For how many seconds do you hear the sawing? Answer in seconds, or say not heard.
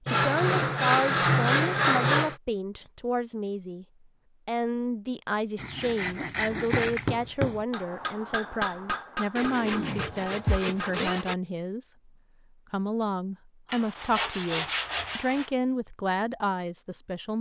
8 s.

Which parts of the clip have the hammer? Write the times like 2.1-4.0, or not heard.
6.5-11.2.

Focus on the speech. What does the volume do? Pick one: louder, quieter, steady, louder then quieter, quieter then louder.
steady.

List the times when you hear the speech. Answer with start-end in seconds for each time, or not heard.
0.1-3.9, 4.5-12.1, 12.7-17.3.